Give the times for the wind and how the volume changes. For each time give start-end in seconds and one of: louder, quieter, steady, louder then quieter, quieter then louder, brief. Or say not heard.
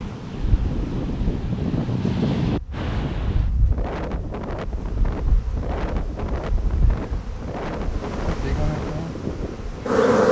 0.0-10.2 quieter.